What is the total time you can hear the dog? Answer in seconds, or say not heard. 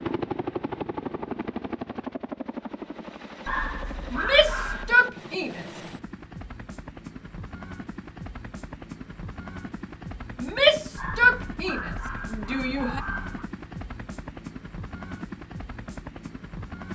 4 s.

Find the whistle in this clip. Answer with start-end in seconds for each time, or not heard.
not heard.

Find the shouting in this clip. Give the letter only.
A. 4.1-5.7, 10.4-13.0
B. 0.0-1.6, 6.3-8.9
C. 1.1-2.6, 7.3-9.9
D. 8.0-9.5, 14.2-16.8
A.